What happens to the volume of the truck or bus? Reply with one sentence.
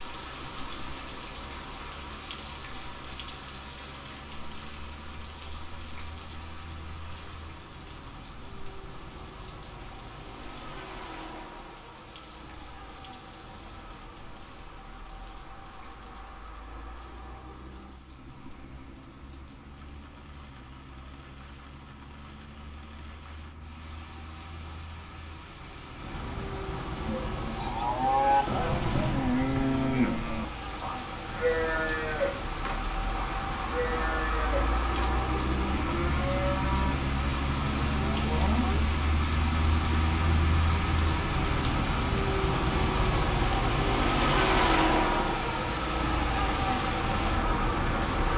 The volume of the truck or bus goes up.